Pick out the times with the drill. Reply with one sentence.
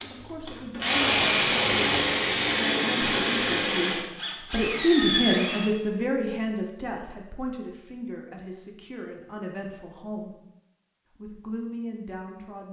You can hear the drill from 0.0 to 5.8 s.